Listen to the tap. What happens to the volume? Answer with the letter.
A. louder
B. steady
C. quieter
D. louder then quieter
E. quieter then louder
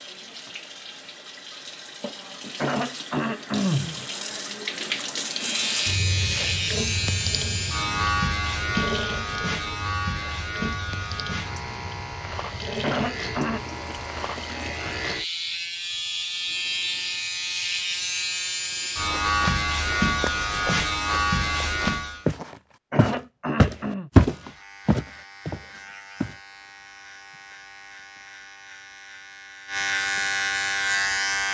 D.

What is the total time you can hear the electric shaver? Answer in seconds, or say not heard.
24 s.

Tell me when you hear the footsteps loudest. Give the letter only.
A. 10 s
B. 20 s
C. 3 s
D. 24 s
D.